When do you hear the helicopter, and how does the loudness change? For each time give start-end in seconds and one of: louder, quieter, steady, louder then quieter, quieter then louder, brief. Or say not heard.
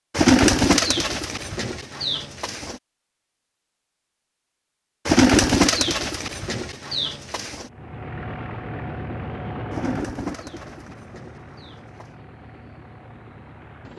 7.7-13.9 quieter.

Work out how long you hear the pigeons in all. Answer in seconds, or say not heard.
8 s.